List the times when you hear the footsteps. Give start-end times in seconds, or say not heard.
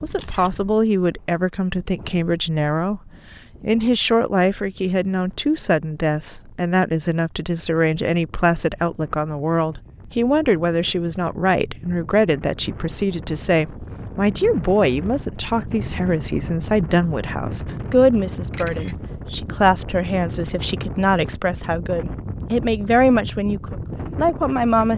not heard.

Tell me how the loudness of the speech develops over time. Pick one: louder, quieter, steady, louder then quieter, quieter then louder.
steady.